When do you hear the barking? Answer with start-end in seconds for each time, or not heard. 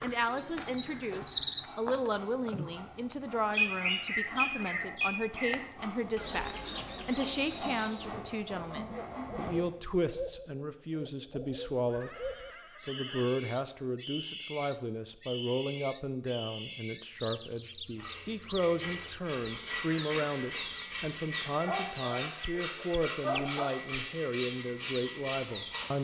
21.5-23.7.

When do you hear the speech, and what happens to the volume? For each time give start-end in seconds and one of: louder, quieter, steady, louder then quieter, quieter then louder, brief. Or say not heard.
0.0-25.9 steady.